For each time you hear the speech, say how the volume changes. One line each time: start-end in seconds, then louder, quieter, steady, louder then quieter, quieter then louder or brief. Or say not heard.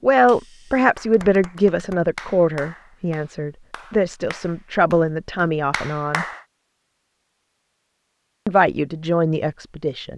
0.0-6.2 quieter then louder
8.4-10.1 brief.